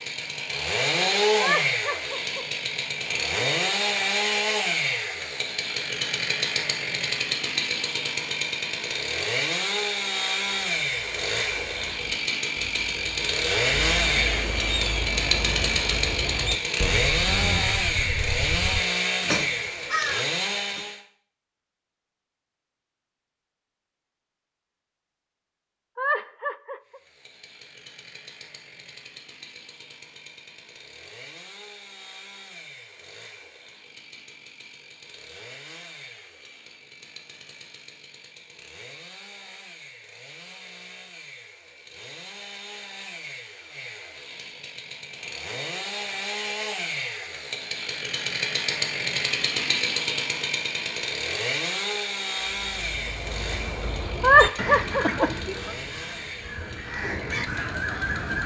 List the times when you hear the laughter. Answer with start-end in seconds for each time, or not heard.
1.4-2.5, 25.9-27.0, 54.2-55.2.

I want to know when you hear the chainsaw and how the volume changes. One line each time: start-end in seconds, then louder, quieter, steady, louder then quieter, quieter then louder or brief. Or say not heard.
0.0-21.0 steady
26.9-58.4 louder then quieter.